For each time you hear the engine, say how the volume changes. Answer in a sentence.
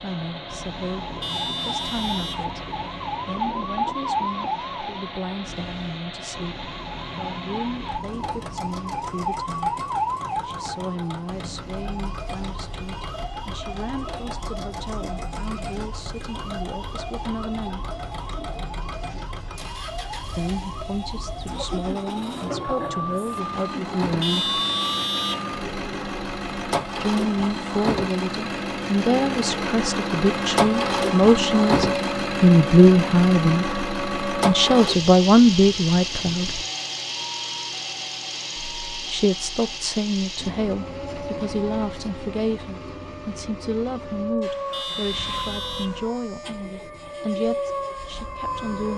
The engine can be heard from 0.0 to 48.9 s, getting louder then quieter.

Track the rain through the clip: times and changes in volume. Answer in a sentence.
The rain can't be heard in this clip.